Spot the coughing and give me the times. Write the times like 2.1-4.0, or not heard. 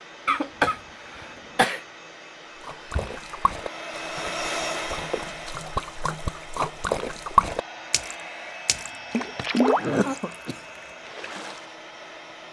0.2-1.8, 9.2-10.6.